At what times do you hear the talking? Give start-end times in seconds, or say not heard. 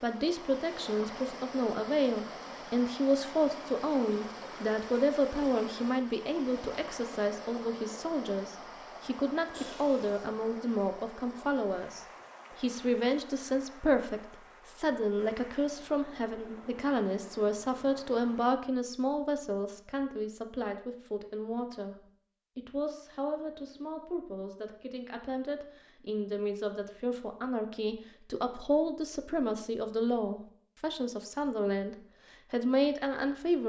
0.0-33.6.